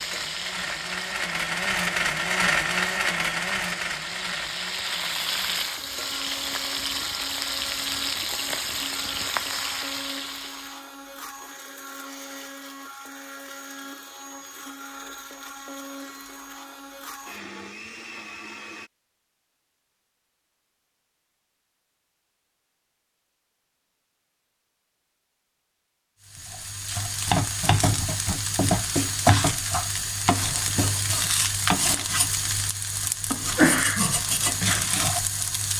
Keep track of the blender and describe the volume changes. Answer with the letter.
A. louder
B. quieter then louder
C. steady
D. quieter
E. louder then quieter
D.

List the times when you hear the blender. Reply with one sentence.
The blender can be heard from 0.0 to 18.9 s.